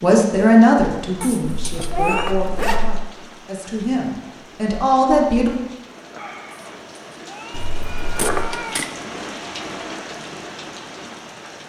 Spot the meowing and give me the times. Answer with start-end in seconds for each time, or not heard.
1.2-2.3, 7.2-8.9.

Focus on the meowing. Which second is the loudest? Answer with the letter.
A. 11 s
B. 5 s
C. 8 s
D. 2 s
D.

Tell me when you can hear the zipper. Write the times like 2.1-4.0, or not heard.
1.4-3.0, 7.5-8.5.